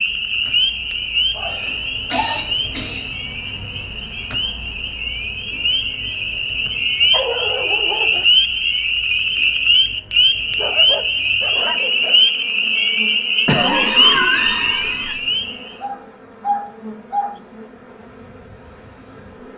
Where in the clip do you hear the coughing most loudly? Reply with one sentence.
The loudest moment of the coughing is at 14 seconds.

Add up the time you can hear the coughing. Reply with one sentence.
You can hear the coughing for 3 seconds altogether.